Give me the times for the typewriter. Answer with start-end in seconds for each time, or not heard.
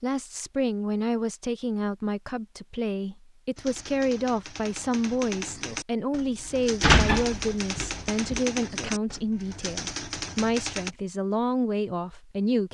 3.5-10.9.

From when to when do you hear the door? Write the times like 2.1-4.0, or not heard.
6.8-8.4.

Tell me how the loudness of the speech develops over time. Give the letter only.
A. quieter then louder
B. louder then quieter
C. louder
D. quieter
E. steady
E.